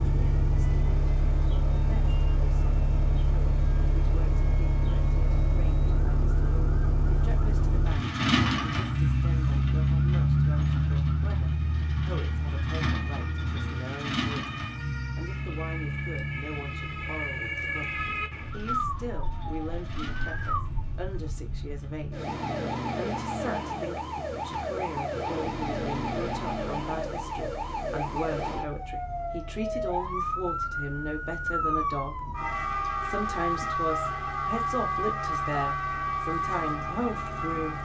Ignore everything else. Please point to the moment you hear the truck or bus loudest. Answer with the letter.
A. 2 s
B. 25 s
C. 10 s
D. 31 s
C.